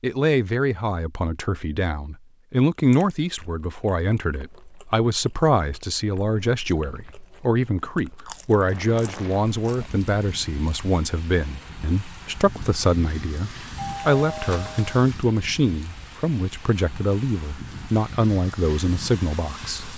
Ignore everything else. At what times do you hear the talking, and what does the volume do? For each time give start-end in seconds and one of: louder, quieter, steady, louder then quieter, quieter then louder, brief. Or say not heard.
0.0-19.9 steady.